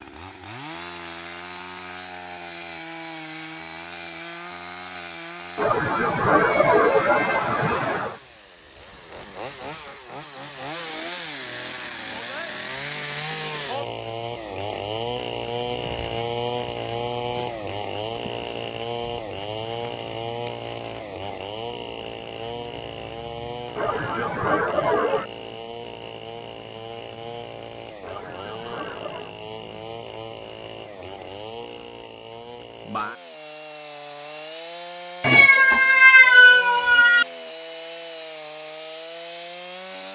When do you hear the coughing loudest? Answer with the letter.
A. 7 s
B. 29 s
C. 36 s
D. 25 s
A.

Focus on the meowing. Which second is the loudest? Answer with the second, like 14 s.
36 s.